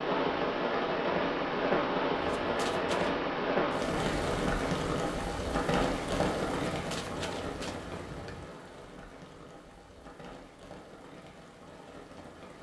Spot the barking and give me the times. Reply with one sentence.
The barking can't be heard in this clip.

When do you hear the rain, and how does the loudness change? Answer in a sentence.
The rain can be heard from 0.0 to 12.5 s, getting quieter.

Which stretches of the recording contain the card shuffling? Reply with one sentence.
You can hear the card shuffling from 2.1 to 3.2 s and from 6.7 to 8.5 s.